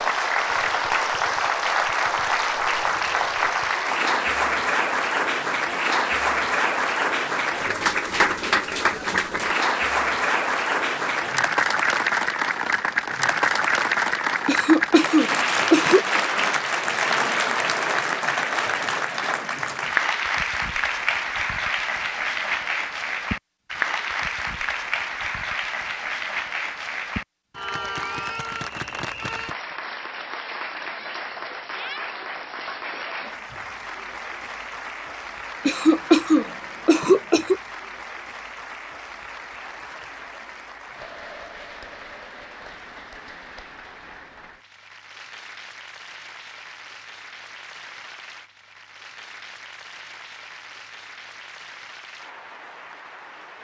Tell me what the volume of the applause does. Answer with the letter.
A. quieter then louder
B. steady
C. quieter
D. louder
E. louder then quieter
C.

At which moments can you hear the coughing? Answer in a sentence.
The coughing can be heard from 14.4 to 16.1 s and from 35.6 to 37.6 s.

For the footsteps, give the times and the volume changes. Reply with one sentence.
You can't hear the footsteps here.